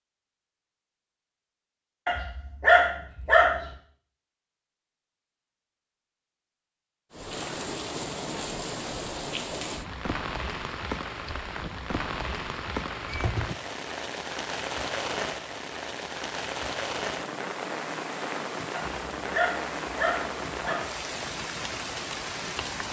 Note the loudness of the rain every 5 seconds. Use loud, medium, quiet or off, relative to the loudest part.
off, loud, loud, loud, loud.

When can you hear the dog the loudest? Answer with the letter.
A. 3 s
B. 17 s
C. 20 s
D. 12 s
A.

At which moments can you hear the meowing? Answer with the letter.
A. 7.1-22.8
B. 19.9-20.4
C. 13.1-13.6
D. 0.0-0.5
C.